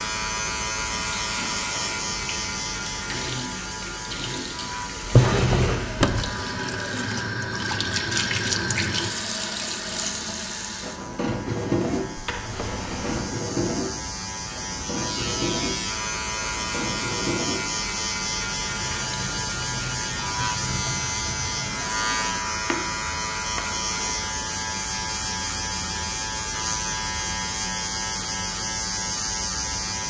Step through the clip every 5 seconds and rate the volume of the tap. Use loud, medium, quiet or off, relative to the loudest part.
medium, loud, loud, medium, medium, off.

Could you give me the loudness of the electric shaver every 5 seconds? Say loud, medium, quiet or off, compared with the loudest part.
loud, medium, medium, loud, loud, loud.